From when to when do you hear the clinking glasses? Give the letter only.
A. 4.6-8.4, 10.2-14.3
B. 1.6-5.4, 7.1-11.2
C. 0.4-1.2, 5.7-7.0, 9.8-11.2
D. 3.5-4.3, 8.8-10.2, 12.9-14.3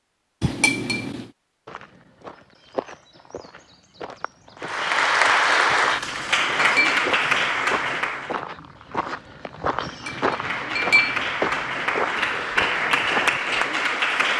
C.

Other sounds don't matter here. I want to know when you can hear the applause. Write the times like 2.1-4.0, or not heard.
4.6-8.4, 10.2-14.3.